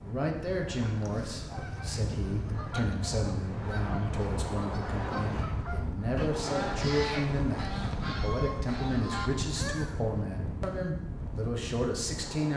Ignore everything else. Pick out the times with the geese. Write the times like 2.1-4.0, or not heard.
0.5-10.0.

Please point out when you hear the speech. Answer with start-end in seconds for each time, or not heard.
0.0-12.5.